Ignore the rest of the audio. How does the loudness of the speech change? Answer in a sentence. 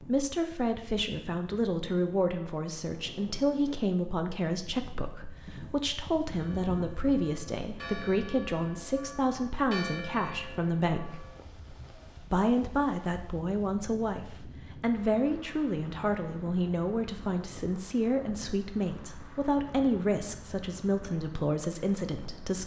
The loudness of the speech stays about the same.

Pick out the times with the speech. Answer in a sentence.
You can hear the speech from 0.0 to 11.2 s and from 12.3 to 22.6 s.